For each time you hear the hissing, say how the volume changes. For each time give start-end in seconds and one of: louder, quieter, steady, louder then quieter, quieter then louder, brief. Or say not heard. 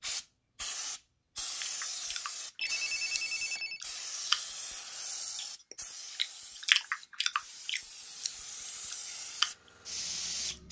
0.0-10.6 quieter then louder.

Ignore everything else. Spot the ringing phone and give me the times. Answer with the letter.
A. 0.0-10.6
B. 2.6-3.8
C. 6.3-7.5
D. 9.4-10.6
B.